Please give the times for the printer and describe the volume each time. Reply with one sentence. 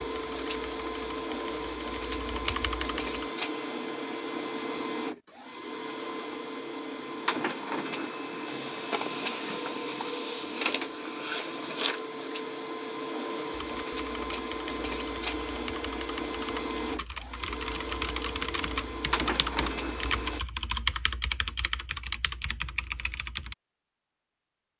The printer can be heard from 0.0 to 20.4 s, at a steady volume.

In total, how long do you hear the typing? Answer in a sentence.
The typing can be heard for 13 seconds in total.